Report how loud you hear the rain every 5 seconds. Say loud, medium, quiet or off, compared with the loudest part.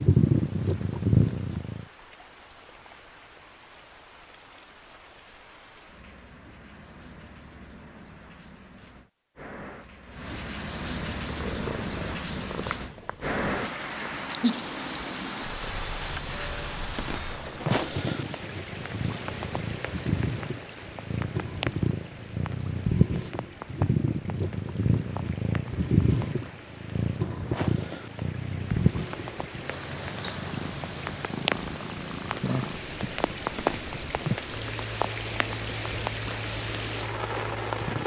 quiet, quiet, loud, loud, medium, medium, loud, loud.